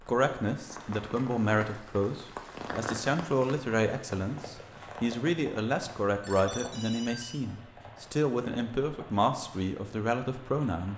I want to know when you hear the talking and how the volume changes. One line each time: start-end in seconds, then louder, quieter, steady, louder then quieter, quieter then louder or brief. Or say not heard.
0.0-10.9 steady.